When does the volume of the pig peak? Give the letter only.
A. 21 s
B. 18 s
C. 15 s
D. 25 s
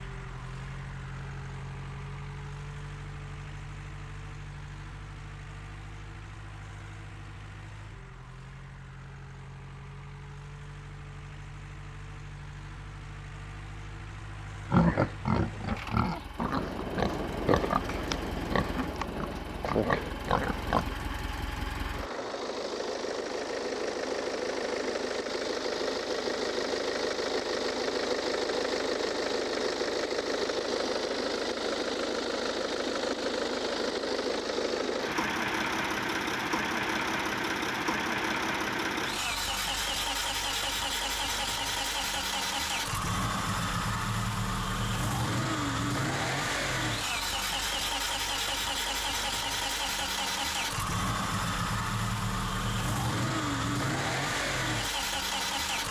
C.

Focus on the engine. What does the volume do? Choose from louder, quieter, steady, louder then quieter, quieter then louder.
louder.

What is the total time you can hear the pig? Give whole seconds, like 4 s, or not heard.
6 s.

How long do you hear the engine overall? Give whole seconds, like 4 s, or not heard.
56 s.